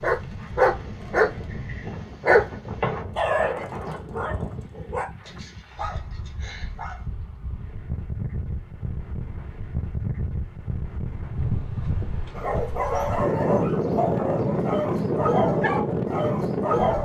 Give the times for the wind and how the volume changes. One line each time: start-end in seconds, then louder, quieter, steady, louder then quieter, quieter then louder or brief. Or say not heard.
0.0-17.0 louder.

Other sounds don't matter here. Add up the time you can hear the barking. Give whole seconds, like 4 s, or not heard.
12 s.